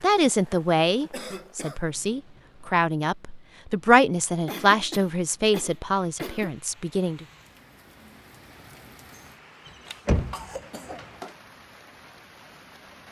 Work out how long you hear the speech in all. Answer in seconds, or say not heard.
7 s.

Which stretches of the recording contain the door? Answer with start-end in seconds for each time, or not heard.
9.7-10.4.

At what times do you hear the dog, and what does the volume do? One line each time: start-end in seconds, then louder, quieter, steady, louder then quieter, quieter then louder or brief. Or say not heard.
not heard.